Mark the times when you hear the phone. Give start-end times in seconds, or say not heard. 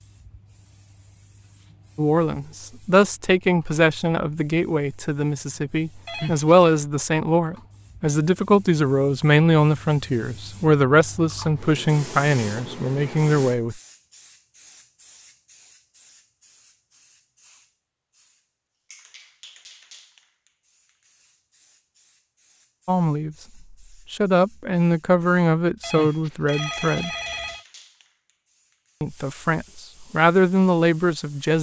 6.0-6.5, 25.8-27.6.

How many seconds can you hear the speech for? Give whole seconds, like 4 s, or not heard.
18 s.